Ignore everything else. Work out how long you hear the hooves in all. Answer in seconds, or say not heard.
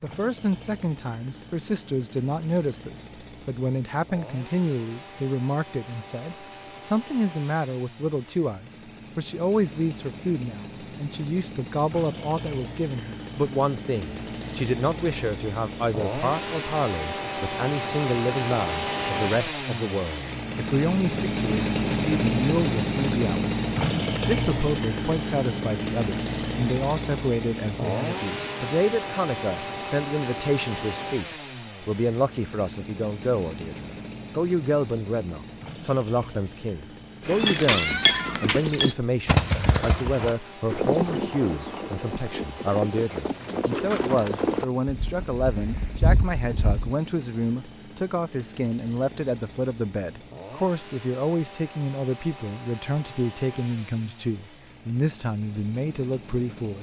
10 s.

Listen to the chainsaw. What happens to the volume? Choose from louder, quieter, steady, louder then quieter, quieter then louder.
louder then quieter.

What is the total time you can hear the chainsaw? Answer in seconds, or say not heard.
57 s.